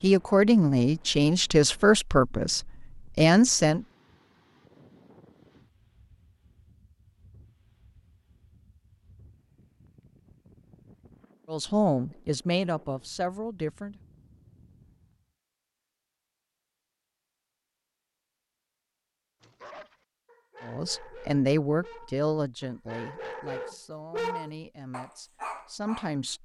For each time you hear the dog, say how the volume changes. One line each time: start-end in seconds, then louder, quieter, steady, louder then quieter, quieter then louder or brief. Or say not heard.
19.4-26.3 louder then quieter.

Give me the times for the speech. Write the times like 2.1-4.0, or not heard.
0.0-3.9, 11.5-14.0, 20.6-26.3.